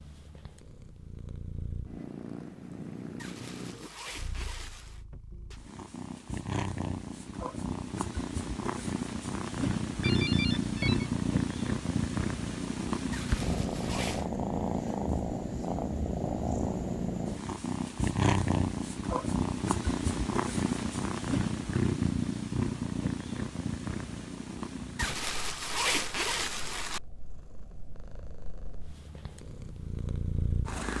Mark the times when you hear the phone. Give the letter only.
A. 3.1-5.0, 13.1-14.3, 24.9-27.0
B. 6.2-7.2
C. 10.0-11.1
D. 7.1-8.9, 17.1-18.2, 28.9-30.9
C.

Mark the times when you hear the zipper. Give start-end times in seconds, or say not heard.
3.1-5.0, 13.1-14.3, 24.9-27.0.